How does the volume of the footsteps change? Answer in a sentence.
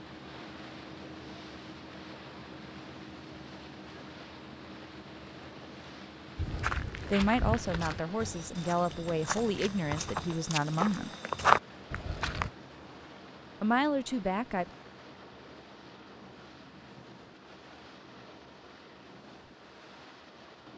The volume of the footsteps goes down, then up.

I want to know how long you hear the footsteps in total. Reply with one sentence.
The footsteps can be heard for 6 seconds in total.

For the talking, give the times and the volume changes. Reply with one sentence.
You can hear the talking from 7.1 to 11.1 s, at a steady volume; and briefly from 13.6 to 14.7 s.